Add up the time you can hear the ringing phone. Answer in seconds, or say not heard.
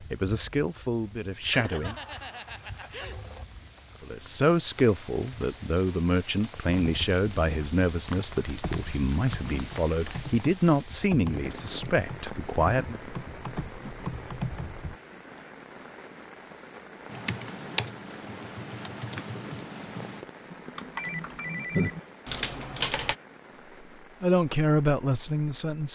3 s.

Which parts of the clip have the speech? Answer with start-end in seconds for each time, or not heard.
0.1-1.9, 4.0-13.0, 24.2-25.9.